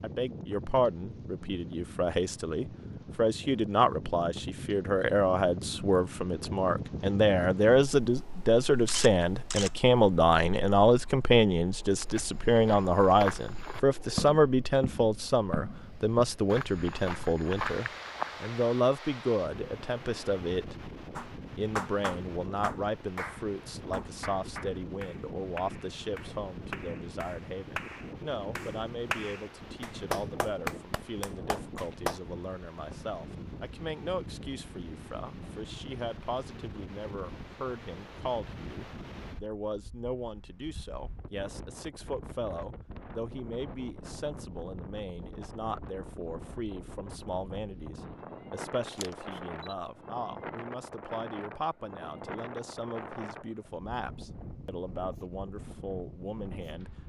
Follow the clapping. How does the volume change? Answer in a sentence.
The volume of the clapping goes down, then up.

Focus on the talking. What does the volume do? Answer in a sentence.
The volume of the talking goes down.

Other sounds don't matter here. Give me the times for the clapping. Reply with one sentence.
You can hear the clapping from 21.1 to 32.2 s.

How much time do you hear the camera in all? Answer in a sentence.
The camera can be heard for 2 seconds in total.